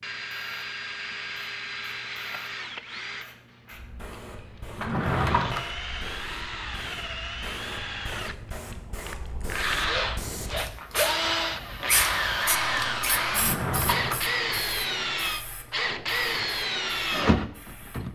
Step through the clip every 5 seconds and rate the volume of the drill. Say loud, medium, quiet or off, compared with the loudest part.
medium, medium, loud, loud.